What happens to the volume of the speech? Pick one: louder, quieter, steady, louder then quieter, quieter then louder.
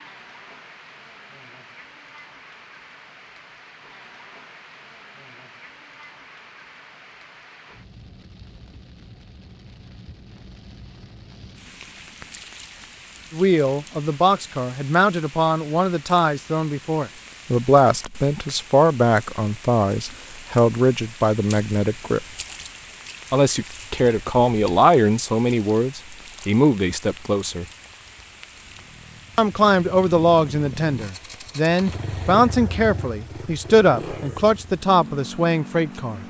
steady.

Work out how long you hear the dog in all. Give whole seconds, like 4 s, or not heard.
not heard.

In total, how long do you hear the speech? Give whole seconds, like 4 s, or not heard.
20 s.